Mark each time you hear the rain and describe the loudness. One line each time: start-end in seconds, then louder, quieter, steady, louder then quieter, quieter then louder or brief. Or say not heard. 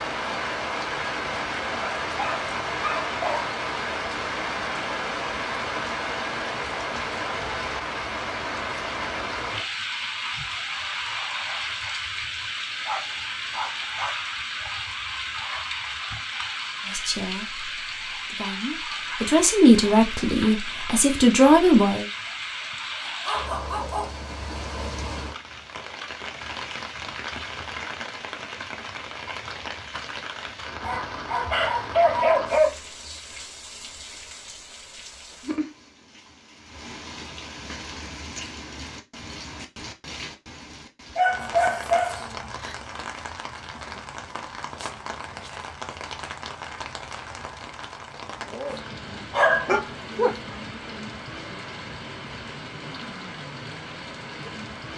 0.0-54.9 quieter.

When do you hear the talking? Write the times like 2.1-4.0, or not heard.
16.9-22.1.